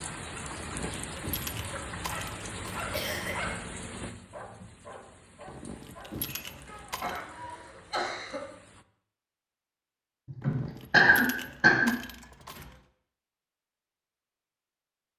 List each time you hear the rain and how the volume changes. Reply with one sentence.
You can hear the rain from 0.0 to 8.8 s, getting quieter.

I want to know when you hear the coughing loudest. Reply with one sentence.
The loudest moment of the coughing is at 11 seconds.